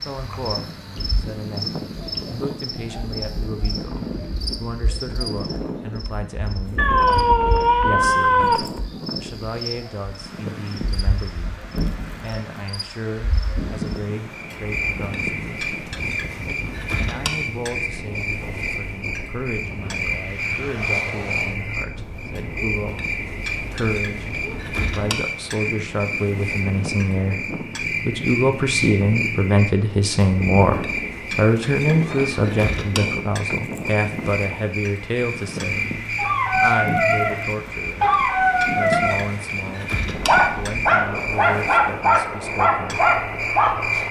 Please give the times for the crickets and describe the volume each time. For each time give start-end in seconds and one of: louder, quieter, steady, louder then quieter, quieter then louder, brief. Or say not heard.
0.0-44.0 louder.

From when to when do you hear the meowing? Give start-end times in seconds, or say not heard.
6.8-8.7, 31.9-32.5.